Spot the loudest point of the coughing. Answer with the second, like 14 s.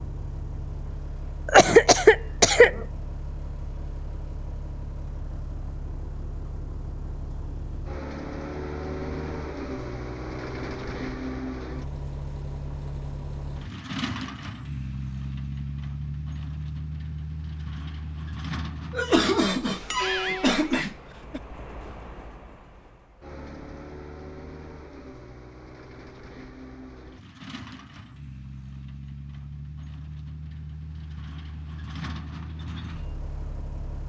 2 s.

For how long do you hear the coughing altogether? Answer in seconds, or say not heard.
4 s.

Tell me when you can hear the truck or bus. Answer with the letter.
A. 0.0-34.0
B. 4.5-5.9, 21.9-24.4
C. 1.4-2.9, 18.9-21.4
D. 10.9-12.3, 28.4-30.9
A.